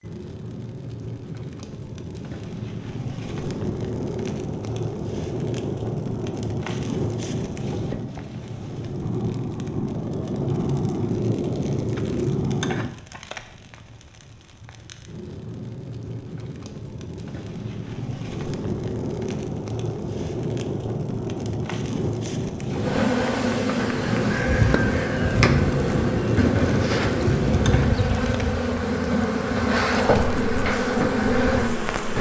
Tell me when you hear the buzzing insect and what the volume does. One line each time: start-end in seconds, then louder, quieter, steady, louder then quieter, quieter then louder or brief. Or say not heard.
22.7-32.1 steady.